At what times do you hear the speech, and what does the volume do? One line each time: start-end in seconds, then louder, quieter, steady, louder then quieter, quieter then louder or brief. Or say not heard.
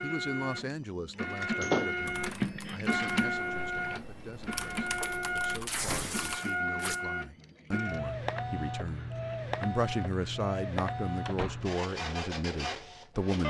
0.0-13.4 quieter then louder.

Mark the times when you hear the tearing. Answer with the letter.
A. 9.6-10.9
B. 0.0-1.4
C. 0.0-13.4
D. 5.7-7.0
D.